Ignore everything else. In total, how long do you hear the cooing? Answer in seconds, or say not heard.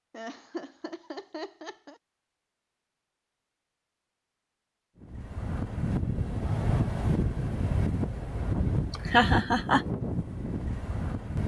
not heard.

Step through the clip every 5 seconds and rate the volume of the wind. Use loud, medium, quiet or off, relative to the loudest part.
off, loud, loud.